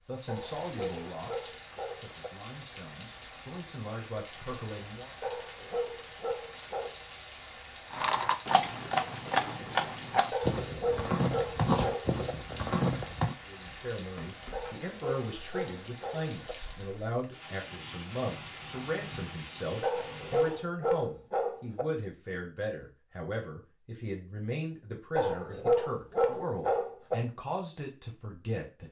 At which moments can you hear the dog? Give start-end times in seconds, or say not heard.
0.2-2.3, 5.2-7.0, 10.3-12.3, 14.5-16.6, 19.8-21.9, 25.1-27.1.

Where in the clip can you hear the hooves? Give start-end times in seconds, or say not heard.
7.9-13.3.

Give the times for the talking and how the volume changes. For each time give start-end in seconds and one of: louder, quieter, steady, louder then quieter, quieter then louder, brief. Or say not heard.
0.1-5.2 quieter then louder
13.4-28.8 steady.